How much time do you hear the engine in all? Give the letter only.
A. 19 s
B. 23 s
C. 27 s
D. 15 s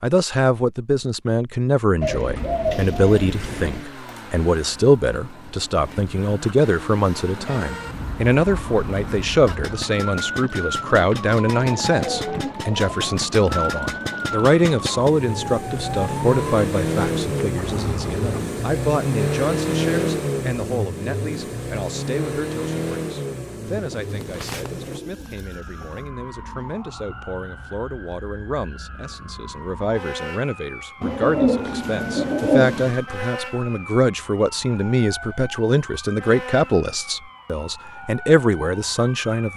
B.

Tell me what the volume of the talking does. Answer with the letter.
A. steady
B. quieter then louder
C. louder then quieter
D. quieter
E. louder
B.